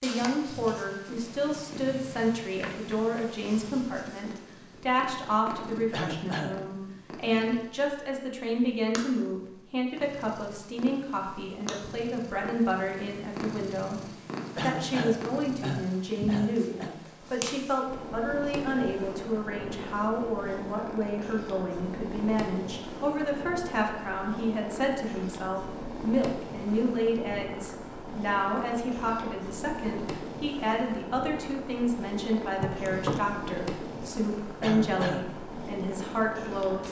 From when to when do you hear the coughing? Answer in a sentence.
The coughing can be heard from 5.9 to 6.5 s, from 14.6 to 16.9 s and from 34.6 to 35.2 s.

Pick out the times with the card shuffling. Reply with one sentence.
You can hear the card shuffling from 2.6 to 3.2 s and from 32.6 to 33.5 s.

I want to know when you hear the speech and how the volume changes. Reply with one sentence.
The speech can be heard from 0.0 to 14.0 s, at a steady volume; and from 14.6 to 36.8 s, at a steady volume.